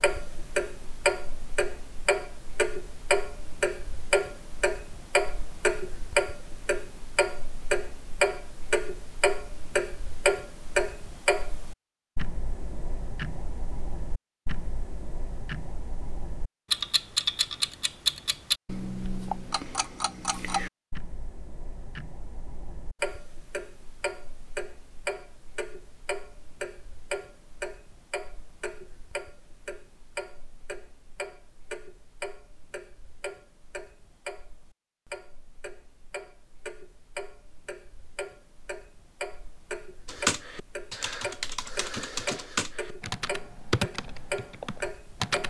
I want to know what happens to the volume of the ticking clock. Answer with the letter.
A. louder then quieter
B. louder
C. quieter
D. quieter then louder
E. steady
C.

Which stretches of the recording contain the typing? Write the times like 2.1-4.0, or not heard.
40.0-45.4.